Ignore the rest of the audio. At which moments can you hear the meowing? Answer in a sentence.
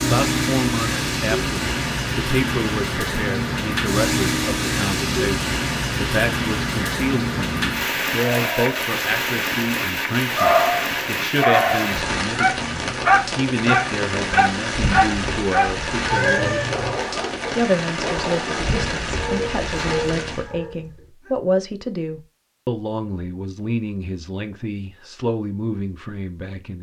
You can hear the meowing from 16.1 to 16.9 s.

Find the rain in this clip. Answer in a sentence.
You can hear the rain from 0.0 to 20.5 s.